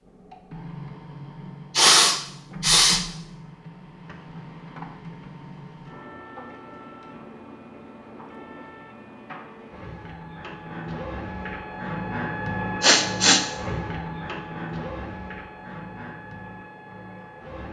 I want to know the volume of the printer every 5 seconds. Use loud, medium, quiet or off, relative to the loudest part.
medium, medium, loud, medium.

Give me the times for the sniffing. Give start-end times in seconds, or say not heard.
1.8-3.0, 12.8-13.4.